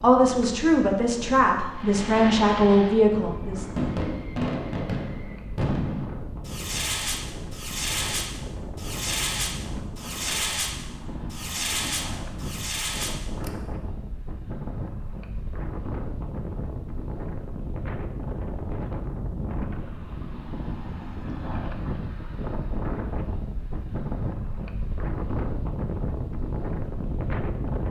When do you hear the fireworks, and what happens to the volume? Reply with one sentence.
You can hear the fireworks from 1.8 to 13.5 s, at a steady volume.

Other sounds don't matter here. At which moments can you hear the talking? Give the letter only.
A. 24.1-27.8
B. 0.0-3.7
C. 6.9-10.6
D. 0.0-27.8
B.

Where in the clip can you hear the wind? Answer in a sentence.
The wind can be heard from 0.0 to 27.8 s.